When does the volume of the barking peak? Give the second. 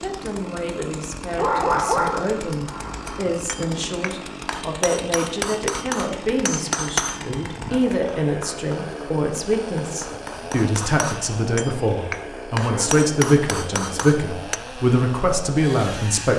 2 s.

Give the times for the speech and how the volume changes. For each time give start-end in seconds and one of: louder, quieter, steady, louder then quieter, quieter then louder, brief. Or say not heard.
0.0-16.3 louder.